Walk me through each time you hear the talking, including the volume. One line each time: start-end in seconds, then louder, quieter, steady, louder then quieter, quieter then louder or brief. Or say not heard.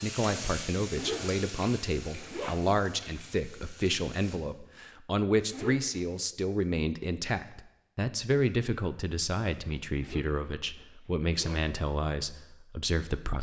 0.0-13.3 steady.